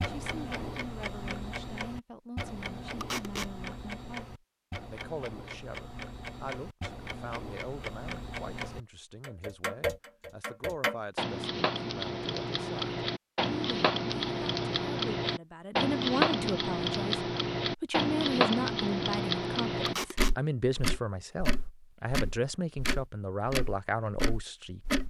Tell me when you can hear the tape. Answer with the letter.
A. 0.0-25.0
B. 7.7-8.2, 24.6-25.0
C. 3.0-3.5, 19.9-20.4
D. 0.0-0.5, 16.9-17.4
C.